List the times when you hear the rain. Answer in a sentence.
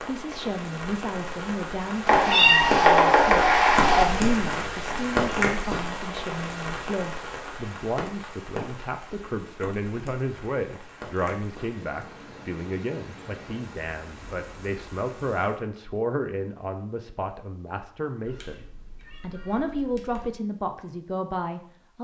The rain can be heard from 0.0 to 15.6 s.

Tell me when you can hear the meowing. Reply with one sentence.
You can hear the meowing from 2.0 to 4.0 s and from 18.2 to 20.2 s.